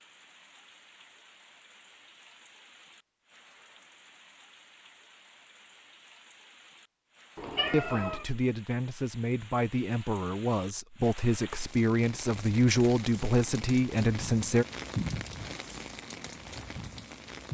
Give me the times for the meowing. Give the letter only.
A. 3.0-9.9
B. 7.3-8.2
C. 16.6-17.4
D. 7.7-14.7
B.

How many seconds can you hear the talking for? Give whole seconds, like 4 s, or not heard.
7 s.